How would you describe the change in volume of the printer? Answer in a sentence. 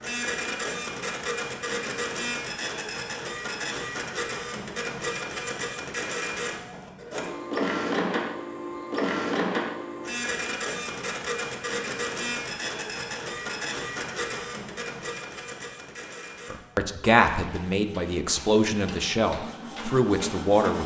The volume of the printer goes down.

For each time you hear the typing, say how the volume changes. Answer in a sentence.
The typing can't be heard in this clip.